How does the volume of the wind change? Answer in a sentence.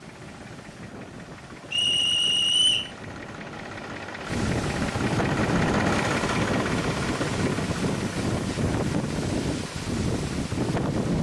The volume of the wind goes up.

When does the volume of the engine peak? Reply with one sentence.
The volume of the engine peaks at 6 seconds.